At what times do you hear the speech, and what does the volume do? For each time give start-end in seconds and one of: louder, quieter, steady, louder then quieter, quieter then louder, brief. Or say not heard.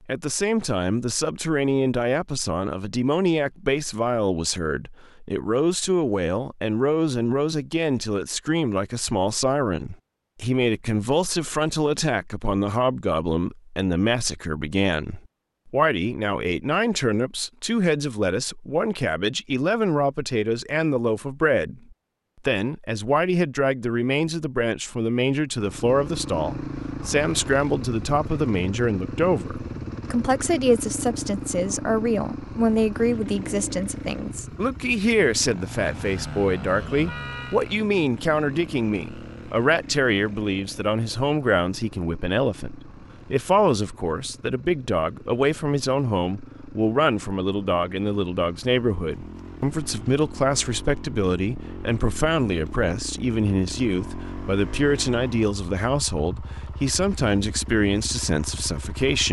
0.1-59.2 steady.